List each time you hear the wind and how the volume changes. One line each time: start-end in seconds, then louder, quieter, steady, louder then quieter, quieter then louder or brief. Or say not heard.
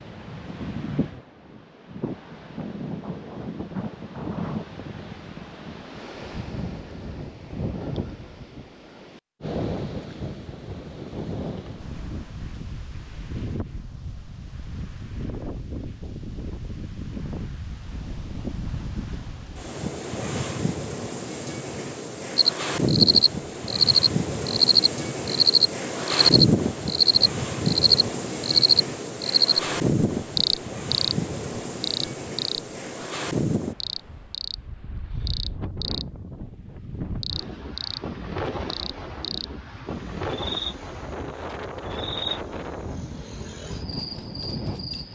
0.0-45.1 louder then quieter.